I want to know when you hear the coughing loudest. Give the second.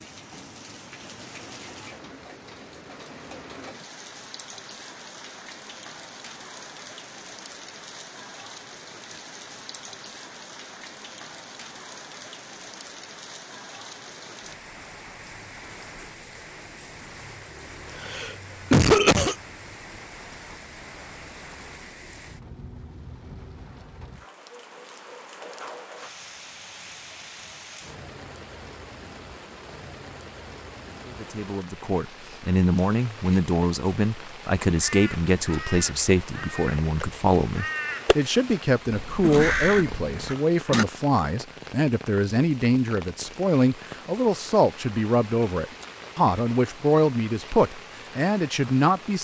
19 s.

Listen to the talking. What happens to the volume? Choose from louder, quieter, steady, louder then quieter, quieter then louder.
steady.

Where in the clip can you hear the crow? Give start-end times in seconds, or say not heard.
34.8-40.4.